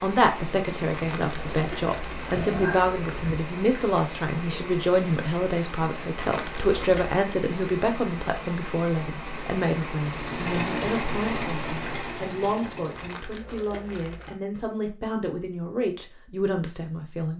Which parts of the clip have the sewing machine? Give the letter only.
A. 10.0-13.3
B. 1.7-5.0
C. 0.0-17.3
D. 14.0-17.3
A.